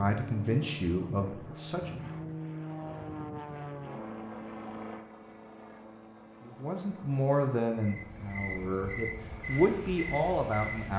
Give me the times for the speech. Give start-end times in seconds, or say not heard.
0.0-2.0, 6.4-10.9.